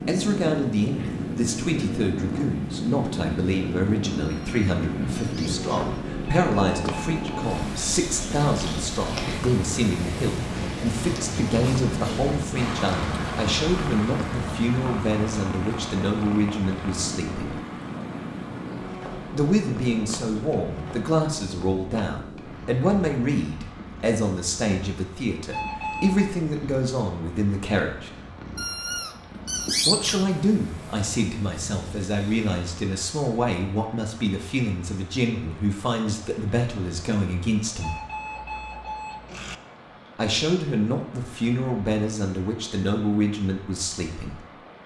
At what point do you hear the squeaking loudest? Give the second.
30 s.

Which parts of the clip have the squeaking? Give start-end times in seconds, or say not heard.
4.2-6.0, 28.6-30.2.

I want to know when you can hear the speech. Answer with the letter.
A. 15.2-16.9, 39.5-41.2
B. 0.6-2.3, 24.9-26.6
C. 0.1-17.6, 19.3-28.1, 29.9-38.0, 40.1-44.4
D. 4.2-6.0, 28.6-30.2
C.